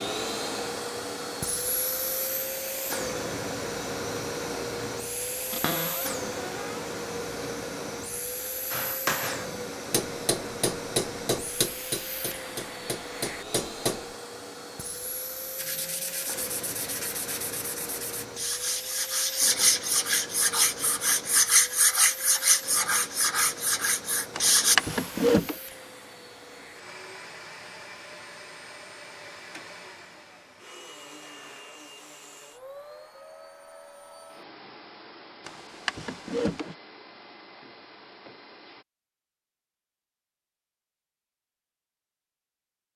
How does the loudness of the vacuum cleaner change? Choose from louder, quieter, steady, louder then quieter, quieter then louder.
quieter.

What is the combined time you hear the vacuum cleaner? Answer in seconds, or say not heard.
39 s.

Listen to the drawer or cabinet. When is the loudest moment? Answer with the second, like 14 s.
25 s.